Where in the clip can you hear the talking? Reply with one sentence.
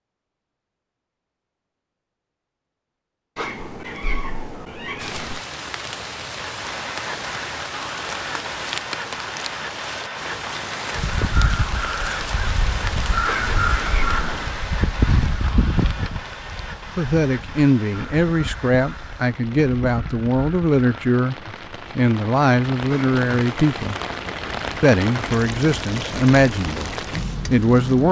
You can hear the talking from 16.9 to 21.4 s, from 21.9 to 23.9 s, from 24.8 to 26.9 s and from 27.5 to 28.0 s.